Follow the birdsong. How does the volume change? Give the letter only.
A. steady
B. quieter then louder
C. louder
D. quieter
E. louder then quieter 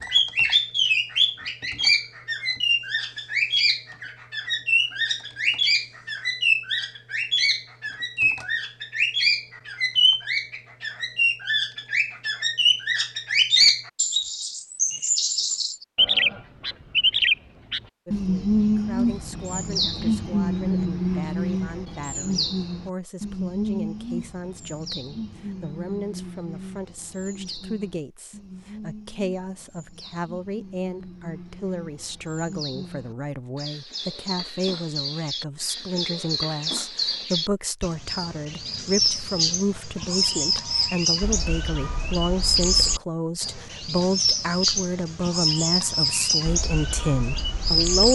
B.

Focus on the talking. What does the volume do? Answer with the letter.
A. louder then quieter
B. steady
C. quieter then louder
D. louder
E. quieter
D.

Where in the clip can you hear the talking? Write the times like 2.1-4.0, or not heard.
18.1-48.1.